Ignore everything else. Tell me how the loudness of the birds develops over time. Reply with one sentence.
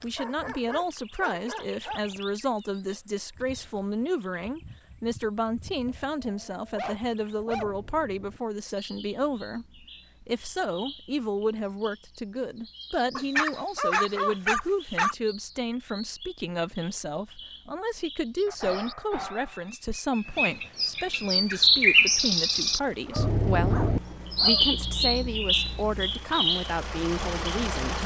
The loudness of the birds goes up.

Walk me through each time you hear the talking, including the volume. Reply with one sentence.
You can hear the talking from 0.0 to 28.0 s, at a steady volume.